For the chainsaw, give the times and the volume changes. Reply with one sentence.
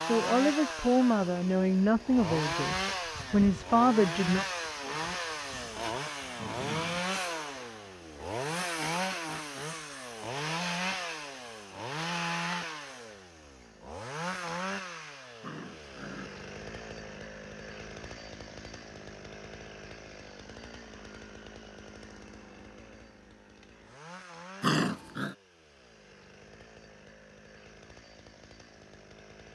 The chainsaw can be heard from 0.0 to 29.5 s, getting quieter.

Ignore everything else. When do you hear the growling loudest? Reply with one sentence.
The volume of the growling peaks at 25 seconds.